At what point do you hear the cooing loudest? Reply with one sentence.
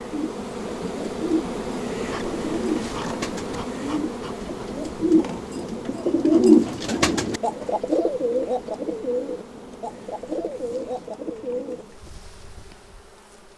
The loudest moment of the cooing is at 6 seconds.